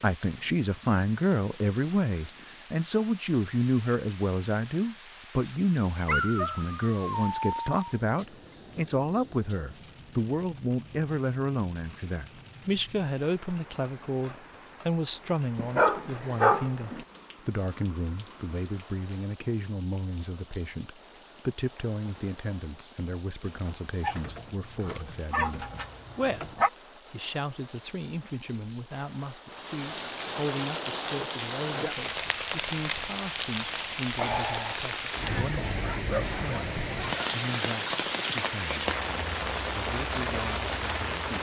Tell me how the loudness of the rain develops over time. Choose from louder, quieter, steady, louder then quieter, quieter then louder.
louder.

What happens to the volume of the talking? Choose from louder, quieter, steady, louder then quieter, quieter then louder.
quieter.